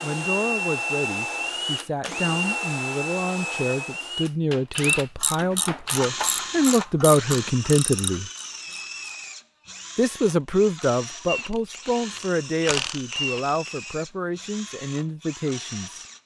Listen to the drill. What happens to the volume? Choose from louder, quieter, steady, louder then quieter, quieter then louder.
quieter.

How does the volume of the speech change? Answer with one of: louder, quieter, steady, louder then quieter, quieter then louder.
louder then quieter.